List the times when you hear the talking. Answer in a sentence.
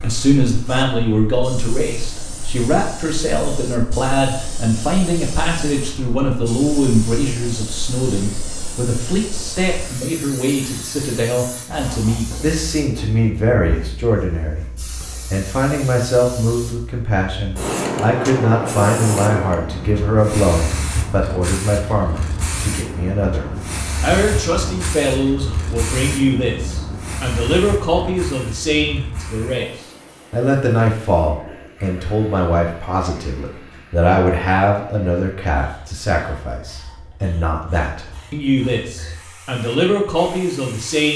The talking can be heard from 0.0 to 29.6 s and from 30.3 to 41.1 s.